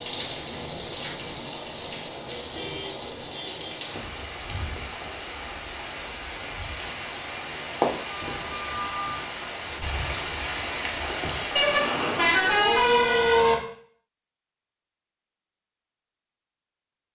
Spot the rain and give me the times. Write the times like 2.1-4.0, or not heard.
0.0-12.5.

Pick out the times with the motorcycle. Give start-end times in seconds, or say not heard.
not heard.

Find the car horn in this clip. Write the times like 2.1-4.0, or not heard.
2.5-3.8, 8.1-9.2, 11.6-13.6.